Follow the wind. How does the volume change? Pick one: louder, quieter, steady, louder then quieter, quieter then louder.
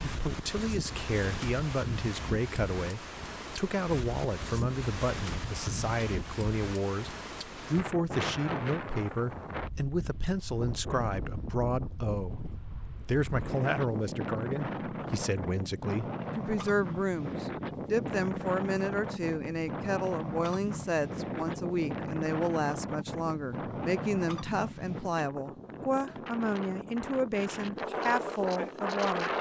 steady.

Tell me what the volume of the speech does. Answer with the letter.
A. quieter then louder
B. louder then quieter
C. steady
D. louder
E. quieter
C.